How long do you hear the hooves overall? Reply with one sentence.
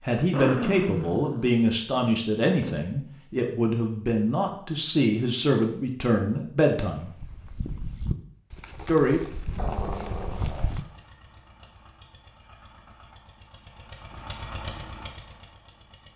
You can hear the hooves for 4 seconds altogether.